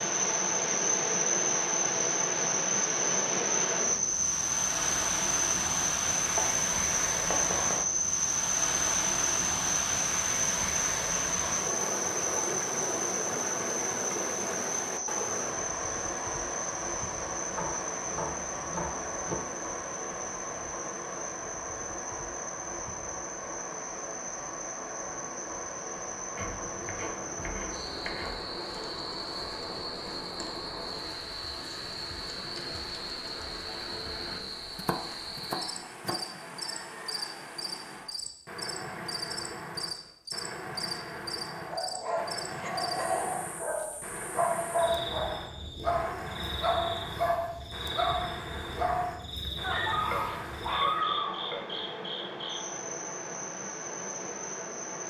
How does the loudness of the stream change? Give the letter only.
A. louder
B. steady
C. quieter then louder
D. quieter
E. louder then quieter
D.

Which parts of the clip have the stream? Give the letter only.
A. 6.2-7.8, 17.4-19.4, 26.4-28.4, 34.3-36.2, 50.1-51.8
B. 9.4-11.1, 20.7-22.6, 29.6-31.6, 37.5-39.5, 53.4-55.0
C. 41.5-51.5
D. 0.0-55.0
D.